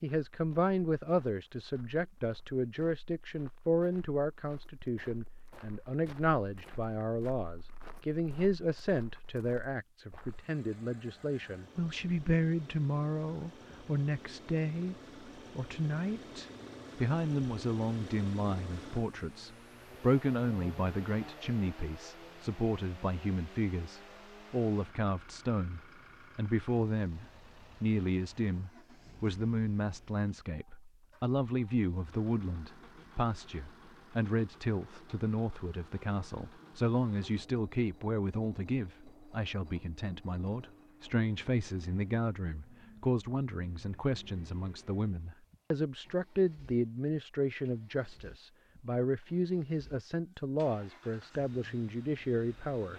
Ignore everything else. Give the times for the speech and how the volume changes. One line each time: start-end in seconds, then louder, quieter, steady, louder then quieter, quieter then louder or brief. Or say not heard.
0.0-52.9 steady.